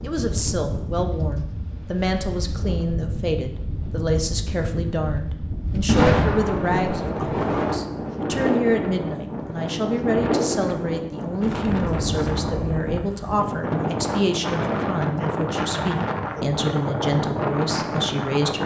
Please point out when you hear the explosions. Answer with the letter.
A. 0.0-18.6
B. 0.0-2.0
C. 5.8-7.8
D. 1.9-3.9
C.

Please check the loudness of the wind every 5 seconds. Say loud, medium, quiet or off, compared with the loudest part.
medium, loud, loud, loud.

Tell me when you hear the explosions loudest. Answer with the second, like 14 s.
6 s.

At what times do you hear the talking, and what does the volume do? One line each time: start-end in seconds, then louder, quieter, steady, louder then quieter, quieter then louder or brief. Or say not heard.
0.0-18.6 steady.